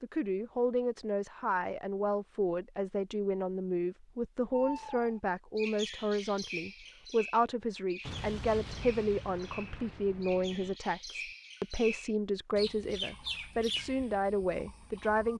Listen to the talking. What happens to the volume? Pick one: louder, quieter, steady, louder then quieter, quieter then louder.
steady.